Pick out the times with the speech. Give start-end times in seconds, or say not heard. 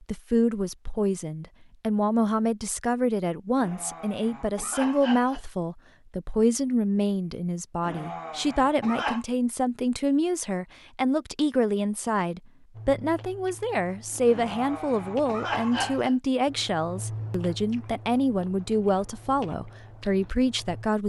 0.1-21.0.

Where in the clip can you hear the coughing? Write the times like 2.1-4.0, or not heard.
3.5-5.4, 7.8-9.2, 14.2-16.1.